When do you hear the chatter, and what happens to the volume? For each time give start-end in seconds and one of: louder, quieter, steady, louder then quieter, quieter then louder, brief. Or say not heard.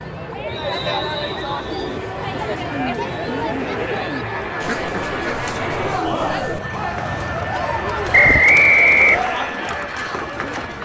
0.0-10.8 steady.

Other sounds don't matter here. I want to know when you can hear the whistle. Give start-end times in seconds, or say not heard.
0.5-1.8, 8.1-9.3.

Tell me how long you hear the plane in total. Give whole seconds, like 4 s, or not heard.
11 s.